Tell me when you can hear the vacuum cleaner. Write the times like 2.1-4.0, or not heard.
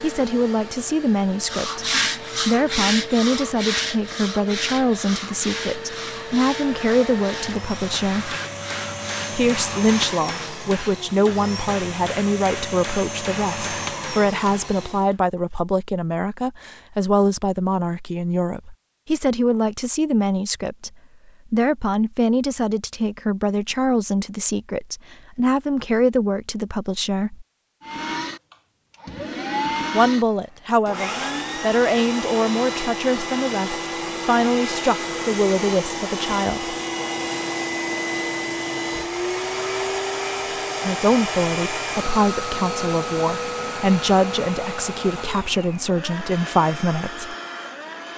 0.0-15.1, 27.8-48.1.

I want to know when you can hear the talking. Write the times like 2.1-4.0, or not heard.
0.0-1.9, 2.5-8.3, 9.3-20.9, 21.5-27.4, 29.9-36.8, 40.9-47.4.